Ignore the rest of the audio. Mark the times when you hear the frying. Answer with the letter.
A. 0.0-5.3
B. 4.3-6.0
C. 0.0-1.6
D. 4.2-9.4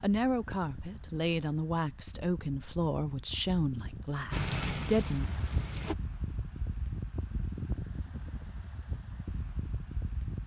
B.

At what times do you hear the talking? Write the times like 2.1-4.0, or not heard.
0.0-5.3.